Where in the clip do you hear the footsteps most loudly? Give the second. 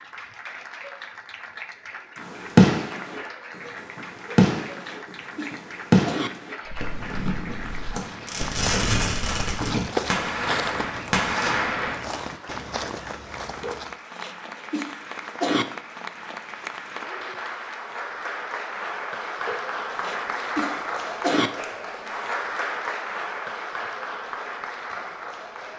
10 s.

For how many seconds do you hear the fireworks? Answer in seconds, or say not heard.
10 s.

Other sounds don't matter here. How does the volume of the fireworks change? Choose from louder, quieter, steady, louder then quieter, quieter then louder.
quieter then louder.